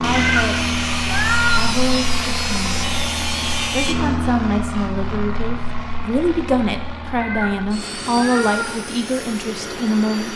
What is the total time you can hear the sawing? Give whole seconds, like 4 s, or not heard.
4 s.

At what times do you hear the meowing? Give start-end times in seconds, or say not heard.
0.1-1.8, 7.2-8.8.